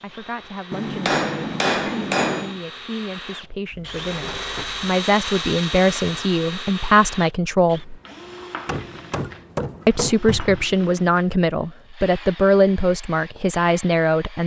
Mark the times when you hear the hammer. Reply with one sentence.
The hammer can be heard from 0.7 to 2.5 s and from 8.7 to 10.2 s.